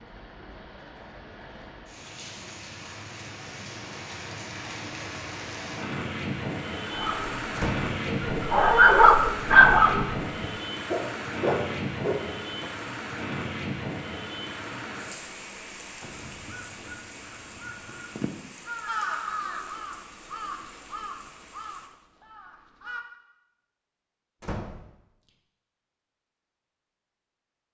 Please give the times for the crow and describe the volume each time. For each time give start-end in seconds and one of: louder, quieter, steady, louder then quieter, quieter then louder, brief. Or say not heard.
16.0-23.1 louder then quieter.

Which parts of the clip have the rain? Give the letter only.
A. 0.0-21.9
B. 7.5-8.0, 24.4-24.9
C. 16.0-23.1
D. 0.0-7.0
A.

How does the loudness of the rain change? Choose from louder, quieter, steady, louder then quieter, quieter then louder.
louder then quieter.